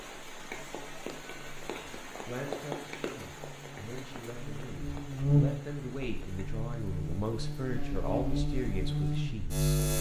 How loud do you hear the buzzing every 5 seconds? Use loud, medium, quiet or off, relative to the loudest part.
quiet, loud.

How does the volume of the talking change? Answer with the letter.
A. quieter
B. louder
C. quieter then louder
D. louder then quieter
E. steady
B.